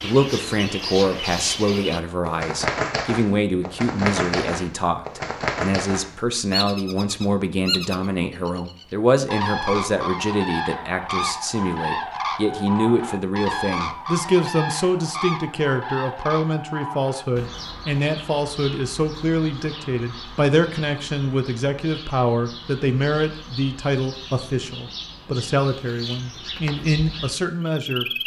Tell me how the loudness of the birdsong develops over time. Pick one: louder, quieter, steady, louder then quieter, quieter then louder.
quieter.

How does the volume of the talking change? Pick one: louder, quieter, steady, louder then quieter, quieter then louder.
steady.